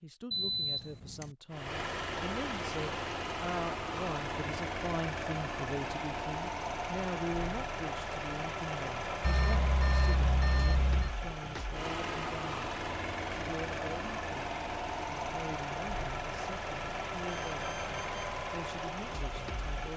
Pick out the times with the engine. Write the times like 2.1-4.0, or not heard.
1.5-19.9.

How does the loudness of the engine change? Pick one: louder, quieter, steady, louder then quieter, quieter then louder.
steady.